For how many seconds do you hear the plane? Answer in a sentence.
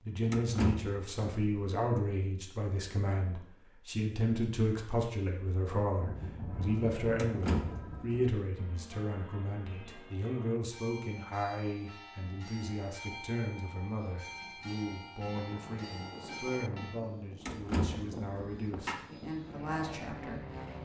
The plane can be heard for 7 seconds in total.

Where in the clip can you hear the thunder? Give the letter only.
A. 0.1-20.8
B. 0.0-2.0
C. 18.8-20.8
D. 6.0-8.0
D.